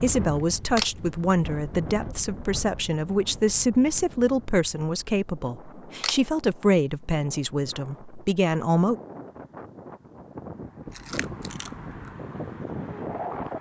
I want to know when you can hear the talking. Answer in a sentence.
You can hear the talking from 0.0 to 8.9 s.